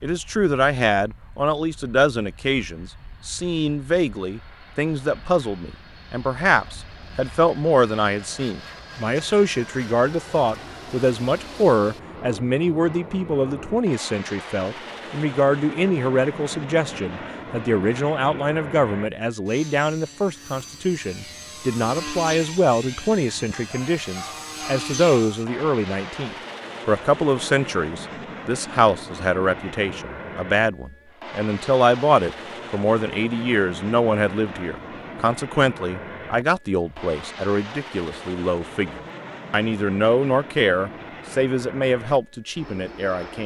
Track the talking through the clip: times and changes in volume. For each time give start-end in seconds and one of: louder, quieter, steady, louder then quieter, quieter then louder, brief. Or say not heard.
0.0-43.4 steady.